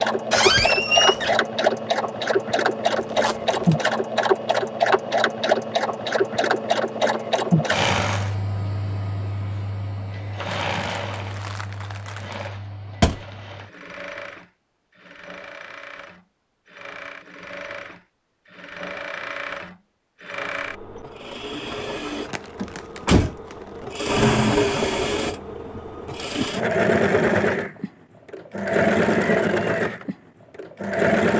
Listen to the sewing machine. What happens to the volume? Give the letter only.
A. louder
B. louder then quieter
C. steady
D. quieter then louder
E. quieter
D.